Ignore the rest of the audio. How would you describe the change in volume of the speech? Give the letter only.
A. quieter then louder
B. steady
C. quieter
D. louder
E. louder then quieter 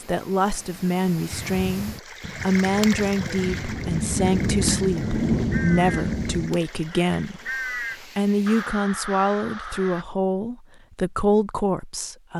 B.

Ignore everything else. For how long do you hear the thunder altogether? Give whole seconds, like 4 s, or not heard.
3 s.